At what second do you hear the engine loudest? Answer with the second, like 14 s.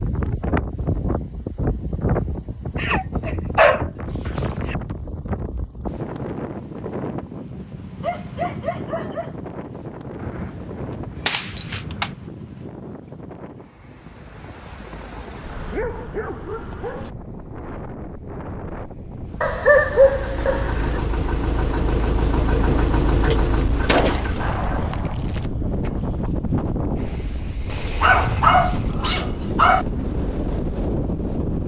23 s.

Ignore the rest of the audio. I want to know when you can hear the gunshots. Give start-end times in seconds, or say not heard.
10.2-12.2, 23.9-25.5.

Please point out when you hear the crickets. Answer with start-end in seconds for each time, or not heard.
not heard.